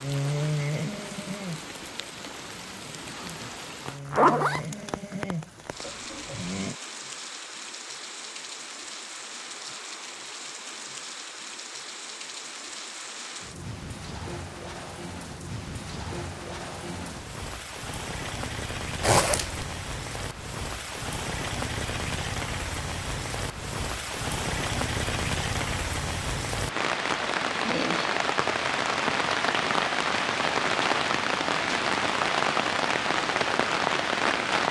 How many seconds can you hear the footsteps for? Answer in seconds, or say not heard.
not heard.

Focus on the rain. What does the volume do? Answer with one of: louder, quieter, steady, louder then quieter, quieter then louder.
louder.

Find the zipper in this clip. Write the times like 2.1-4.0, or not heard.
4.1-4.6, 19.0-19.6.